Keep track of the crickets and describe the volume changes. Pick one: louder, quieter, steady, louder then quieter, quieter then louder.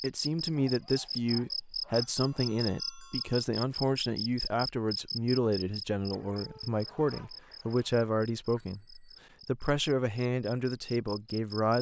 quieter.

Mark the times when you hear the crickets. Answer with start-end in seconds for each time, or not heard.
0.0-11.7.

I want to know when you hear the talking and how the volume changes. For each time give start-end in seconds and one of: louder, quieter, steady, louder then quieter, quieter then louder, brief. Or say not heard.
0.0-11.7 steady.